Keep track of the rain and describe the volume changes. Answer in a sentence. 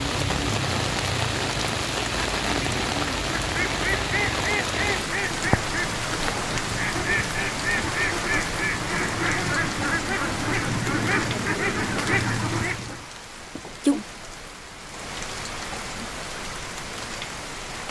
The loudness of the rain goes down.